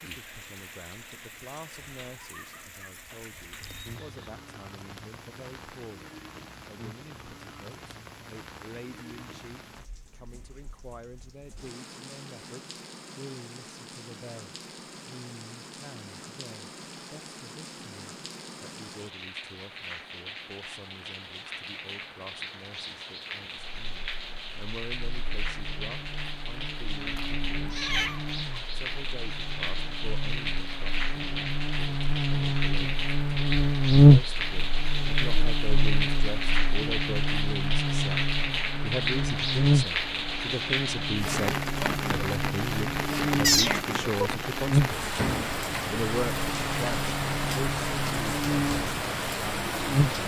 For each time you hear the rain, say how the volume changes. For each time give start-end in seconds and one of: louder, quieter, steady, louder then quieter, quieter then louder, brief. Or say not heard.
0.0-50.2 louder.